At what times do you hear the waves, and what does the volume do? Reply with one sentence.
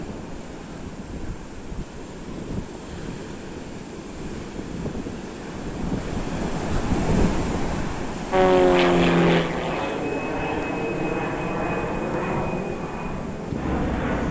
You can hear the waves from 0.0 to 14.2 s, getting louder then quieter.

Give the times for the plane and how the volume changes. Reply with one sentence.
The plane can be heard from 8.3 to 14.2 s, getting quieter.